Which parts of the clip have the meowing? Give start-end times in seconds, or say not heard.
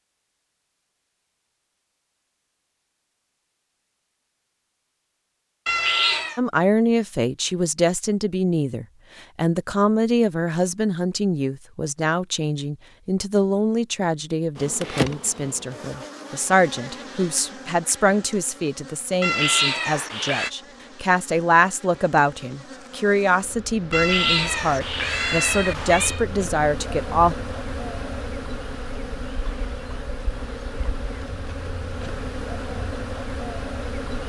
5.7-6.4, 19.2-20.5, 23.9-26.2.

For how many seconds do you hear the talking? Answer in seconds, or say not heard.
21 s.